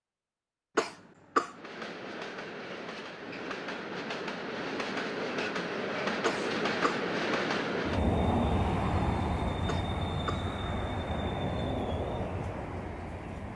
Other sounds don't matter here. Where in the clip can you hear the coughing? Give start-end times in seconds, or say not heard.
0.8-1.6, 6.2-7.0, 9.7-10.5.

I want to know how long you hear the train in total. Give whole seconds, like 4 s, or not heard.
12 s.